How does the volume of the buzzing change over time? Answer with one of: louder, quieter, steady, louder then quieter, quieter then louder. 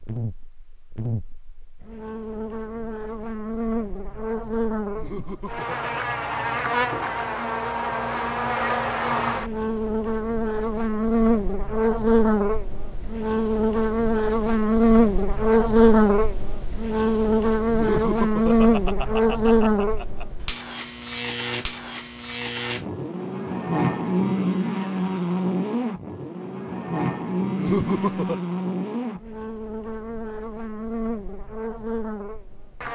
louder then quieter.